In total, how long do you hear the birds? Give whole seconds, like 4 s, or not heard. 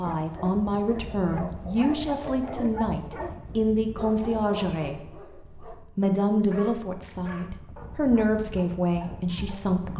not heard.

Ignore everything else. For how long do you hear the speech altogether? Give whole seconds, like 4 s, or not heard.
9 s.